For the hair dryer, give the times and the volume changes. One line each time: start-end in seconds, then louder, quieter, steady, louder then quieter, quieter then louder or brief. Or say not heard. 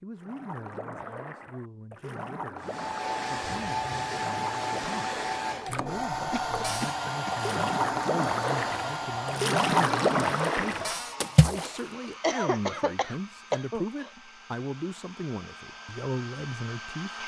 2.5-17.2 quieter.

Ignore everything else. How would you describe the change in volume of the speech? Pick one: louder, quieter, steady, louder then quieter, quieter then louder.
louder.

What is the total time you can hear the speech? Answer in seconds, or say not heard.
17 s.